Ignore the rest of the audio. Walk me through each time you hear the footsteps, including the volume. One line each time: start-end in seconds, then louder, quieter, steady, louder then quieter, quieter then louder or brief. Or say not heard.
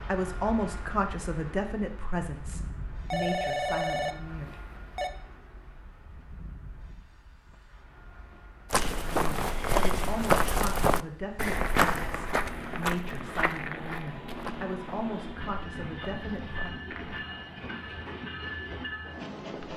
8.7-17.2 quieter.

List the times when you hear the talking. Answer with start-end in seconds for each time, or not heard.
0.1-4.5, 8.9-16.7.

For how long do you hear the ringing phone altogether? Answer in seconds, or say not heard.
2 s.